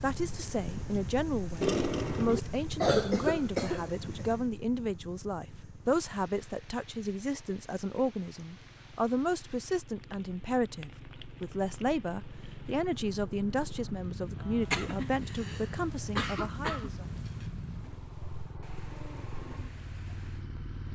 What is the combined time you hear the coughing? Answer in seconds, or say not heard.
5 s.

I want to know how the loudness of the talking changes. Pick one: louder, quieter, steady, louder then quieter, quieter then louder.
steady.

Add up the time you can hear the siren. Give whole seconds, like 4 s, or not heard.
not heard.